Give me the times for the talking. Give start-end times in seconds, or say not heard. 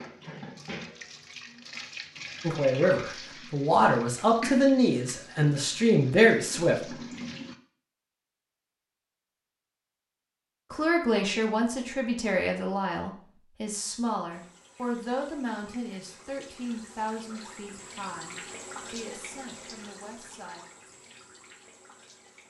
2.4-7.0, 10.7-20.6.